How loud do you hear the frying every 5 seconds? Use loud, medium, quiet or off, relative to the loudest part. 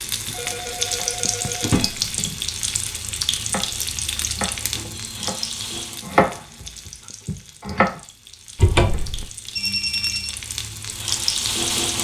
loud, medium, loud.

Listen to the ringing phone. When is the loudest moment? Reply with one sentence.
The volume of the ringing phone peaks at 10 seconds.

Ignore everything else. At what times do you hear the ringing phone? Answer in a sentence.
You can hear the ringing phone from 0.3 to 1.9 s, from 4.8 to 5.8 s and from 9.6 to 10.3 s.